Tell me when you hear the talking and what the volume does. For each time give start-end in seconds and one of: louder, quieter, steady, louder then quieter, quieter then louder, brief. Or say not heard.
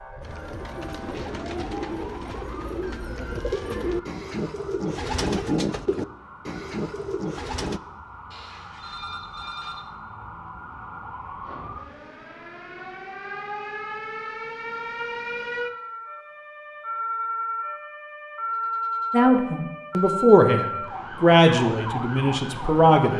19.1-23.1 louder then quieter.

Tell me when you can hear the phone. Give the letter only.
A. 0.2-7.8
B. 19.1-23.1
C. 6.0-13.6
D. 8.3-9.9
D.